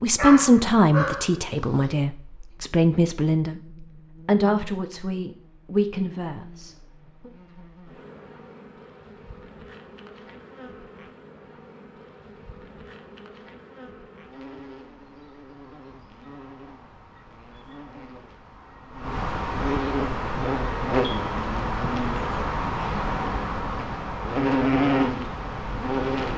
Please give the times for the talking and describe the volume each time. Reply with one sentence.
You can hear the talking from 0.0 to 7.3 s, getting quieter.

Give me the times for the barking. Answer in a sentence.
The barking can be heard from 0.1 to 1.9 s.